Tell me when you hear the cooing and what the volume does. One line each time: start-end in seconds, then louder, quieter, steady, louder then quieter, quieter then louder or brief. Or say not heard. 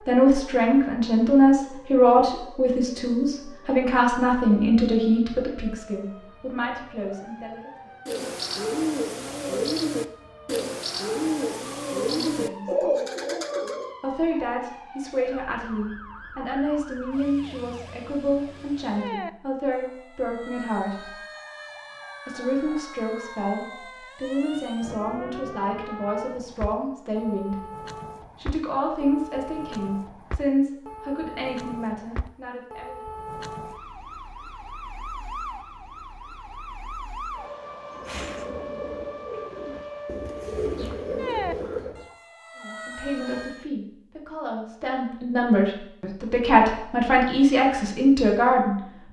8.1-13.9 steady
37.9-42.1 louder.